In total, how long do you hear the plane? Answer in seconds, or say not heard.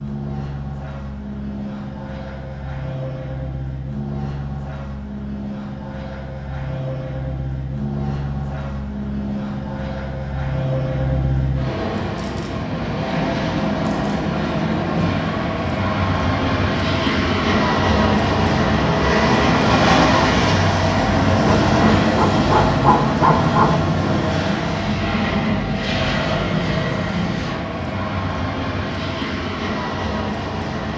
31 s.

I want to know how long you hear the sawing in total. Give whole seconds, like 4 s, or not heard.
2 s.